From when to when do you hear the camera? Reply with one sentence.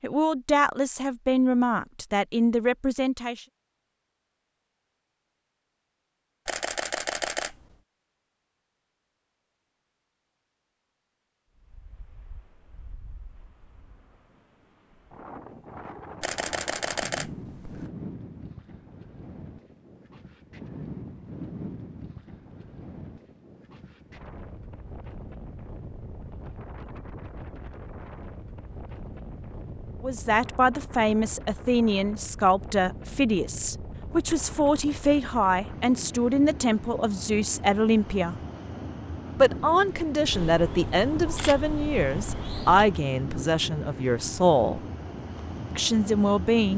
You can hear the camera from 6.5 to 7.7 s, from 16.2 to 17.9 s and from 40.3 to 42.9 s.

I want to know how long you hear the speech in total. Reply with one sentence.
The speech can be heard for 18 seconds in total.